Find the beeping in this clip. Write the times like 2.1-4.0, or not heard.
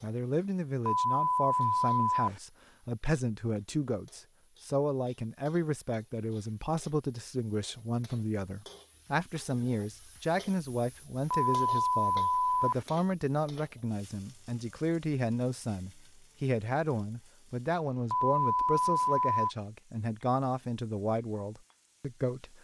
0.8-2.4, 11.3-12.8, 18.1-19.5.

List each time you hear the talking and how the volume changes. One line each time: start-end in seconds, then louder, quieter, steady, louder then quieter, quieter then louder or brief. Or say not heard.
0.0-22.5 steady.